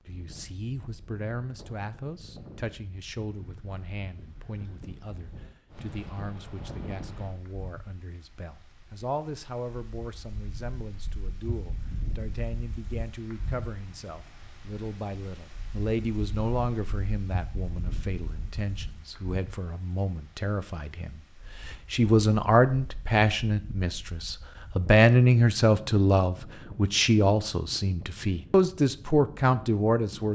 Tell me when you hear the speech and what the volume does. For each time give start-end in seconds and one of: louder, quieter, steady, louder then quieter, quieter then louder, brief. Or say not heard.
0.1-30.2 louder.